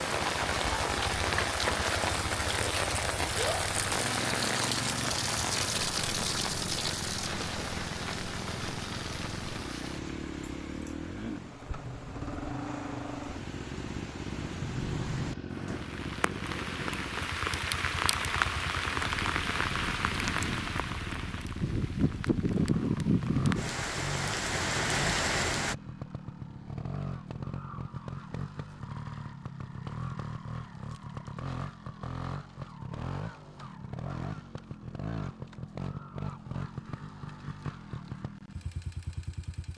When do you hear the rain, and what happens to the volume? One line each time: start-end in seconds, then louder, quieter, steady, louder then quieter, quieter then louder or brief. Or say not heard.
0.0-25.8 quieter then louder.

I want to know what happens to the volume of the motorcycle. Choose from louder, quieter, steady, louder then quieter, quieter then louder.
steady.